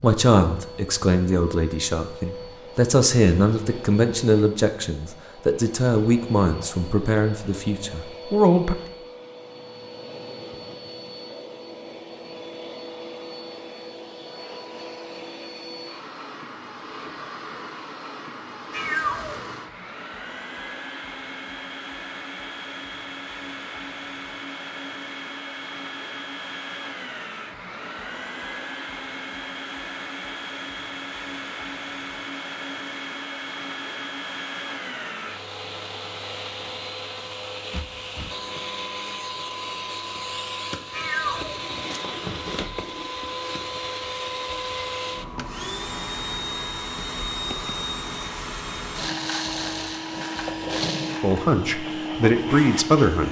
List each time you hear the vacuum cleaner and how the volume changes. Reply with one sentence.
The vacuum cleaner can be heard from 0.0 to 53.2 s, getting louder.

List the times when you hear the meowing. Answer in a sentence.
The meowing can be heard from 18.7 to 19.6 s and from 40.9 to 42.0 s.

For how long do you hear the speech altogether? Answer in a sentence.
The speech can be heard for 11 seconds in total.